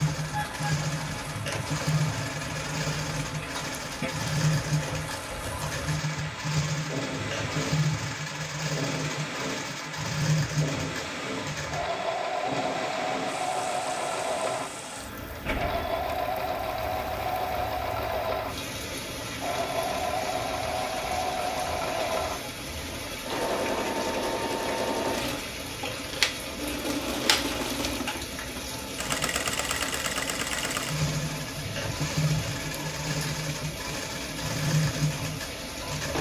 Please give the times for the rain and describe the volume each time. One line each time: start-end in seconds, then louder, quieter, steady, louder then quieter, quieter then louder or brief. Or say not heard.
0.0-36.1 steady.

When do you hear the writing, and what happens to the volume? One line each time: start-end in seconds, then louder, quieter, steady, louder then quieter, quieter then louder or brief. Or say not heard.
not heard.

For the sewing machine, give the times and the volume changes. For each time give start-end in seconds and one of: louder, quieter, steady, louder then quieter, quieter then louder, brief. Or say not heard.
0.0-36.1 steady.